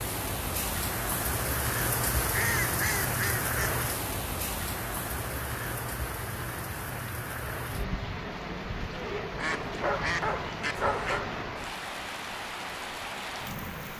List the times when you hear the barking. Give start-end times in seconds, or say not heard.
9.6-11.3.